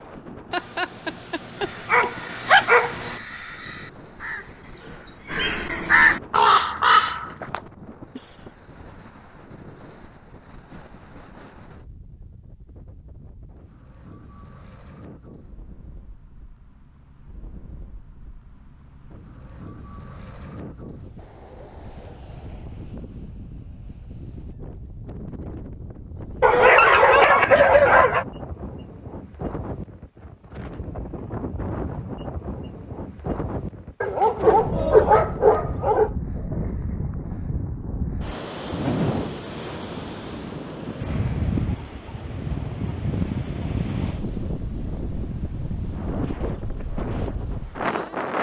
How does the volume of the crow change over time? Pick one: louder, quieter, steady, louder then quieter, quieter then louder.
louder.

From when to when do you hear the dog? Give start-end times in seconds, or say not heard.
0.5-3.2, 26.4-28.2, 34.0-36.1.